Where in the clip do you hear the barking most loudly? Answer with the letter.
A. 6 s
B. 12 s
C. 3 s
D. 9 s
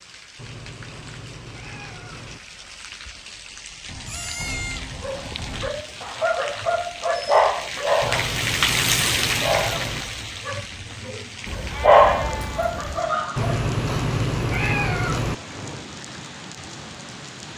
B.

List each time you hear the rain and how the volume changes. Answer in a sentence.
The rain can be heard from 0.0 to 17.5 s, getting louder then quieter.